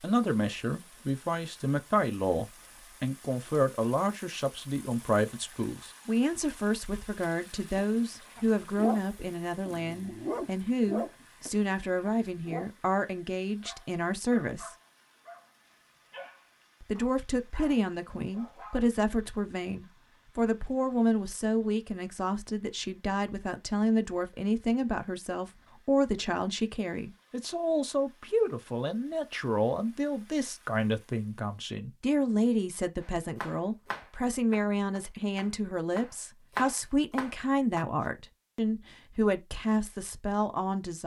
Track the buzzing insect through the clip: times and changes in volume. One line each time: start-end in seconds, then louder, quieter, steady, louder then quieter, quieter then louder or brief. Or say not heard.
not heard.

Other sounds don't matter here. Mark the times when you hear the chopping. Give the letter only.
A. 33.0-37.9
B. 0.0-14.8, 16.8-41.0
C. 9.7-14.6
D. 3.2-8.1
A.